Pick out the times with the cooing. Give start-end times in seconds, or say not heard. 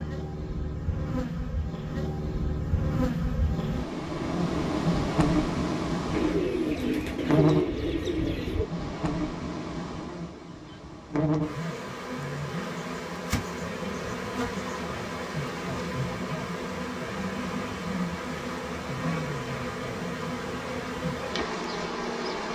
6.1-8.7.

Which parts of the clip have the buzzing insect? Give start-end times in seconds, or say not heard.
0.0-22.5.